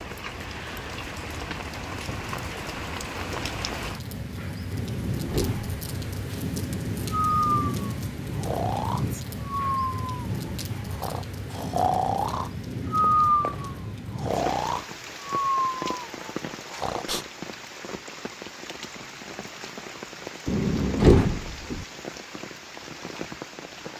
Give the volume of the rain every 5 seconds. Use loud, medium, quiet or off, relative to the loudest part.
loud, loud, loud, medium, medium.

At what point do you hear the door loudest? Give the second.
21 s.